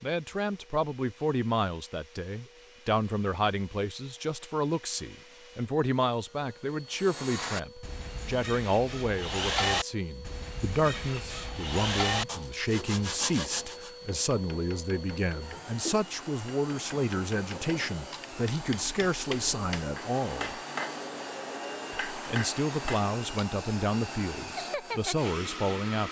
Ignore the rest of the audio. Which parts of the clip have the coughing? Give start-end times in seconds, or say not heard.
15.3-16.1.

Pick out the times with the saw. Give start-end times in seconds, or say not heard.
6.9-13.9.